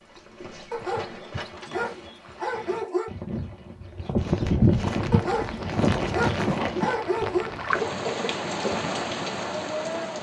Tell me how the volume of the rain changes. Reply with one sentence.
The loudness of the rain goes up.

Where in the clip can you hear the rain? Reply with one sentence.
You can hear the rain from 4.9 to 10.1 s.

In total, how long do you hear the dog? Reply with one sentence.
The dog can be heard for 5 seconds in total.